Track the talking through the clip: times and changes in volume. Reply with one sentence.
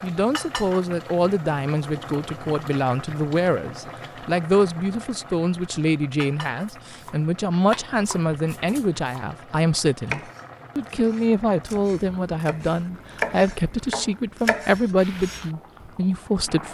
You can hear the talking from 0.0 to 16.6 s, at a steady volume.